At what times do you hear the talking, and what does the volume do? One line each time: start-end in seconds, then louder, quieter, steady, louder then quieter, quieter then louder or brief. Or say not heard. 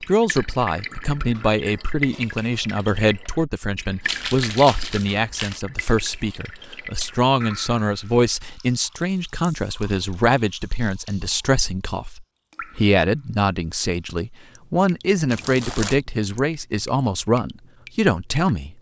0.0-18.7 steady.